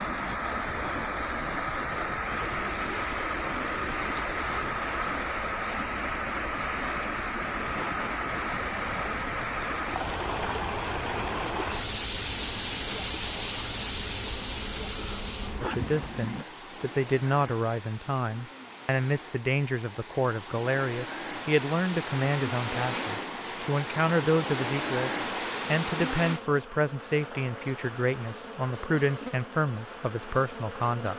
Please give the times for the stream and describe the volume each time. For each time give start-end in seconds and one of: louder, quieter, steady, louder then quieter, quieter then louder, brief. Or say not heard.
0.0-26.4 quieter then louder.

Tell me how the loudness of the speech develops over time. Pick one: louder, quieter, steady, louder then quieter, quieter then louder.
steady.